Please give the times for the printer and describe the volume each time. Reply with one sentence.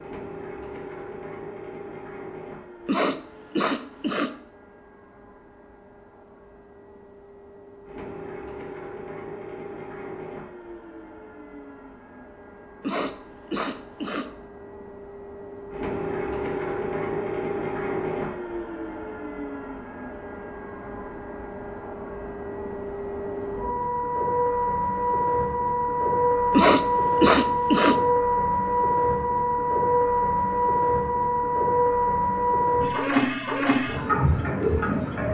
You can hear the printer from 0.0 to 35.3 s, getting louder.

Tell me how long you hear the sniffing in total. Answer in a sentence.
You can hear the sniffing for 4 seconds altogether.